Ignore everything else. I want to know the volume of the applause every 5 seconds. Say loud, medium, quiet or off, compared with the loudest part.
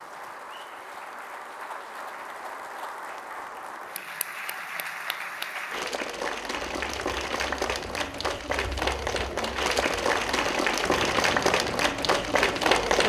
quiet, medium, loud.